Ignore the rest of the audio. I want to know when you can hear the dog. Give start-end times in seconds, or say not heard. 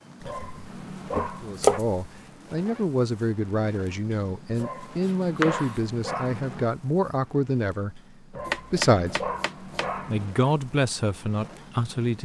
0.2-1.8, 4.5-6.7, 8.3-10.3.